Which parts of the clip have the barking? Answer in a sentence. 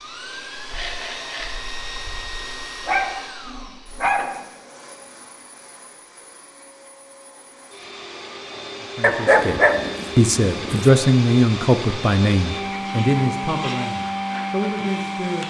You can hear the barking from 2.9 to 4.3 s and from 9.0 to 10.9 s.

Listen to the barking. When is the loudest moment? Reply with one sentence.
The volume of the barking peaks at 9 seconds.